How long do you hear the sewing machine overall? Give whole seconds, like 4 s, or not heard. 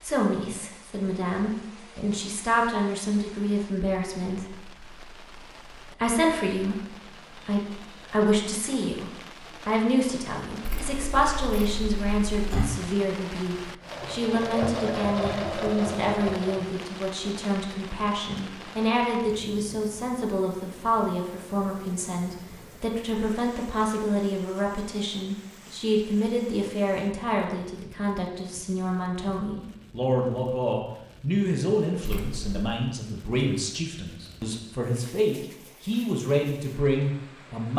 3 s.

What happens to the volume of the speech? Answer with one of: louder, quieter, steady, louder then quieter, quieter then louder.
steady.